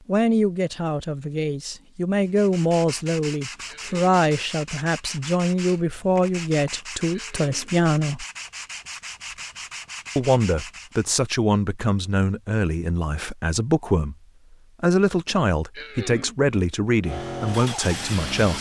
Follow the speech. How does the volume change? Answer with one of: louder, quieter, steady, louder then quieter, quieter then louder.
steady.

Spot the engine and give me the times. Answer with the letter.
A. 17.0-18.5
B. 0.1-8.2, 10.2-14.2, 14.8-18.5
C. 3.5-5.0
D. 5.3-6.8
A.